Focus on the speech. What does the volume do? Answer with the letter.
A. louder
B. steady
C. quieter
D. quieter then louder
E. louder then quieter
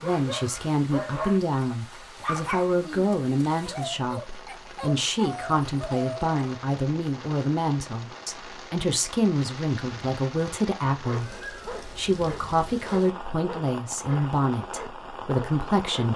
B.